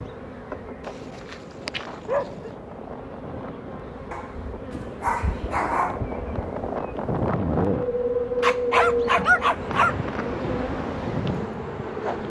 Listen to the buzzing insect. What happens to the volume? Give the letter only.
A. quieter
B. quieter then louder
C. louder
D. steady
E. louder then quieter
C.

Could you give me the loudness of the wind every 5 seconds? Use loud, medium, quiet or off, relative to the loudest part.
quiet, loud, medium.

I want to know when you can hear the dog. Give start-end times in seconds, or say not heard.
0.8-2.5, 4.1-6.0, 8.4-9.9.